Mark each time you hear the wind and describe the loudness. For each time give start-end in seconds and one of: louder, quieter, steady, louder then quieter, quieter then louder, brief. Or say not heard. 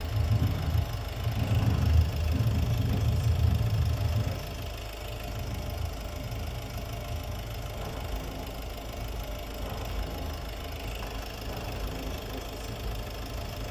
0.0-13.6 quieter.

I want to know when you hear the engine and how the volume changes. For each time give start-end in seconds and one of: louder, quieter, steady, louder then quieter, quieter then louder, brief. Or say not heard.
0.0-13.6 steady.